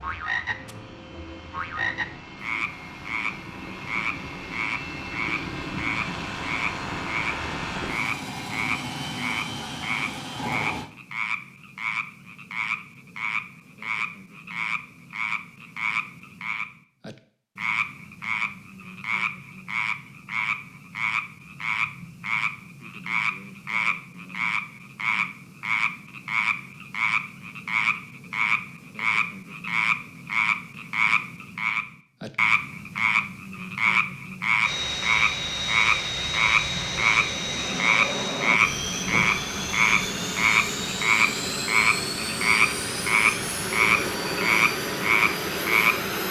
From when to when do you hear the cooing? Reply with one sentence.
The cooing can't be heard in this clip.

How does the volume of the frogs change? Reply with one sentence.
The loudness of the frogs goes up.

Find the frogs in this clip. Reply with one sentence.
You can hear the frogs from 0.0 to 46.2 s.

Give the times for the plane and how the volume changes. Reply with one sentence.
The plane can be heard from 0.0 to 10.9 s, getting louder; and from 34.6 to 46.2 s, at a steady volume.